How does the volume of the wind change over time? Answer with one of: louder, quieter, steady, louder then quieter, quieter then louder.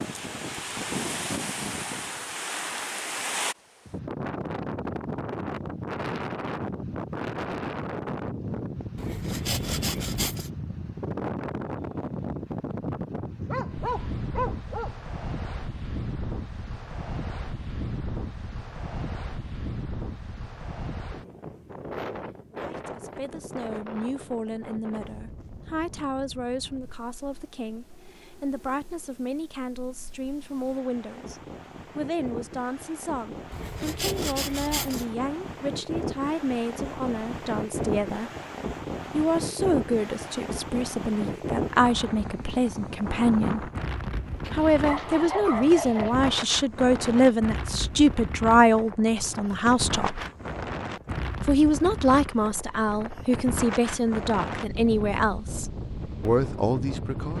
quieter then louder.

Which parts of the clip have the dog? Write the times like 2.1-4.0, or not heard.
13.3-14.9, 44.4-46.3.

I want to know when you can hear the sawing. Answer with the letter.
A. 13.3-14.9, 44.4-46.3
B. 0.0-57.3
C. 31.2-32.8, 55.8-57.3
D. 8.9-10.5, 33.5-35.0
D.